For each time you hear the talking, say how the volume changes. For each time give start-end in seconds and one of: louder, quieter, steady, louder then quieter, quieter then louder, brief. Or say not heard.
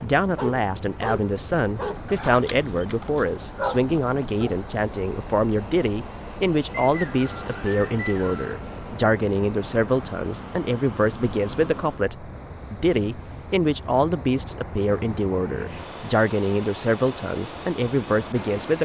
0.0-18.8 steady.